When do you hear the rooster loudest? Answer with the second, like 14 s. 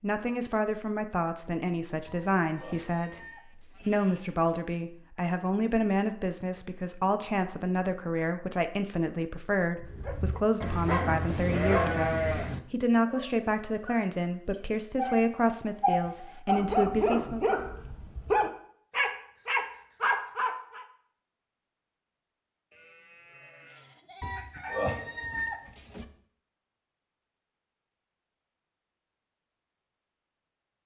25 s.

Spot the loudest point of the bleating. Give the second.
12 s.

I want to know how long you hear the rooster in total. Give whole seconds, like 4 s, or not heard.
4 s.